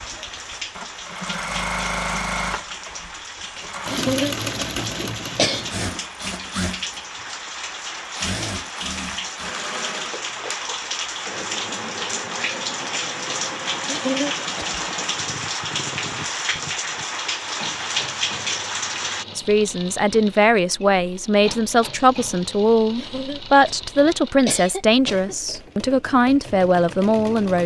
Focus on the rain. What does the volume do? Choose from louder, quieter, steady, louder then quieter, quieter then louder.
louder.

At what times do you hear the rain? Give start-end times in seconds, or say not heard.
0.0-19.2.